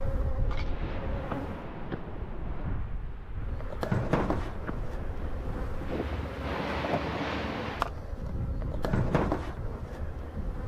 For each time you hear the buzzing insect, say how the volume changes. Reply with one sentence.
You can hear the buzzing insect briefly from 0.0 to 1.7 s; and from 3.4 to 10.6 s, getting quieter then louder.